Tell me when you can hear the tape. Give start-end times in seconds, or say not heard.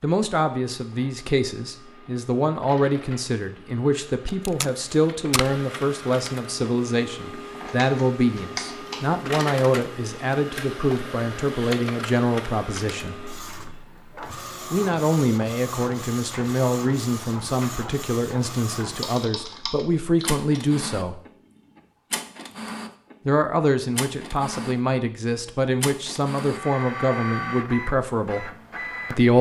4.2-5.6.